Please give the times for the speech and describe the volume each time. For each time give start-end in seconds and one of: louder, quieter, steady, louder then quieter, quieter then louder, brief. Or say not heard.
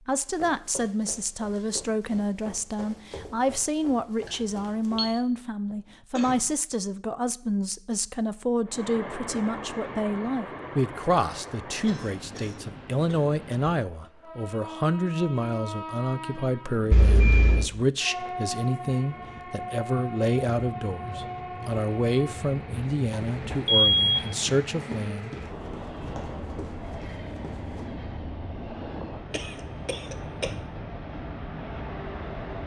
0.1-25.4 steady.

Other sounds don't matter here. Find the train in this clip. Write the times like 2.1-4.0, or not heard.
8.7-32.6.